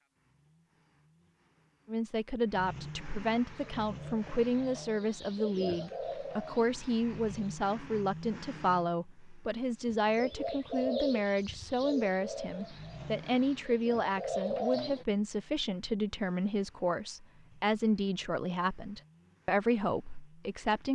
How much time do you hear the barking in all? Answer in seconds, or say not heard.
not heard.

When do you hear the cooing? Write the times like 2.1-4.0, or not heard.
3.5-7.5, 9.8-15.1.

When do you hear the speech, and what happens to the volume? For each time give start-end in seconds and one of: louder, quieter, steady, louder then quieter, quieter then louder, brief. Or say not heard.
1.9-20.9 steady.